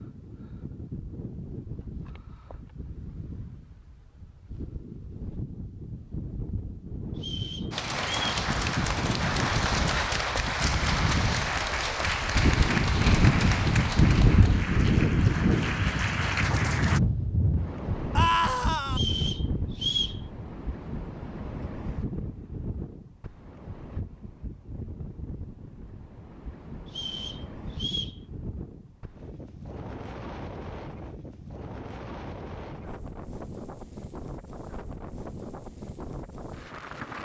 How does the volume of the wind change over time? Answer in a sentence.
The volume of the wind goes up, then down.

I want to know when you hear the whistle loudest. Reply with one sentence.
The volume of the whistle peaks at 20 seconds.